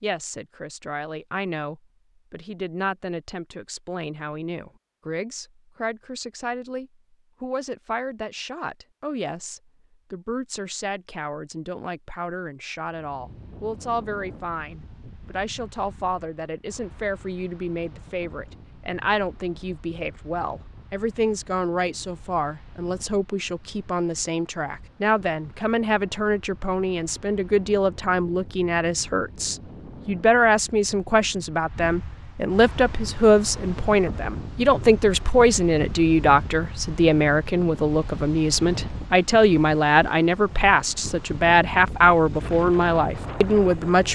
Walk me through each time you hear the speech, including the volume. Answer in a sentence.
The speech can be heard from 0.0 to 44.0 s, getting louder.